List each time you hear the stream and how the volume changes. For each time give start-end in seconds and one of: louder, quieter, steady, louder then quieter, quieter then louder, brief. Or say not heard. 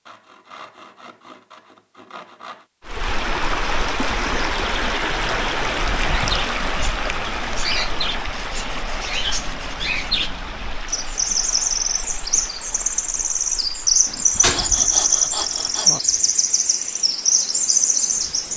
2.9-18.5 quieter.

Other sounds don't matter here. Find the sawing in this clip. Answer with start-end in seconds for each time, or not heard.
0.1-2.6, 8.3-10.3, 14.1-15.9.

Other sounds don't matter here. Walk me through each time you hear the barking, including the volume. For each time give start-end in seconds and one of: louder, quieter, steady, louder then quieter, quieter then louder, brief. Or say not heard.
not heard.